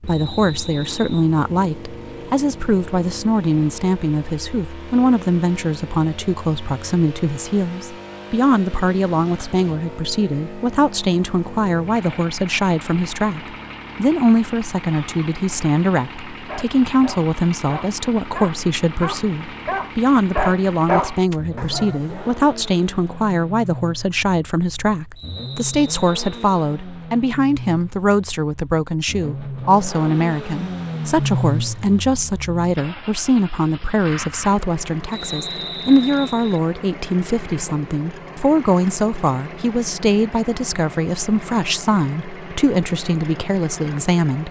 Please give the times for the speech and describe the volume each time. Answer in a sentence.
The speech can be heard from 0.1 to 44.4 s, at a steady volume.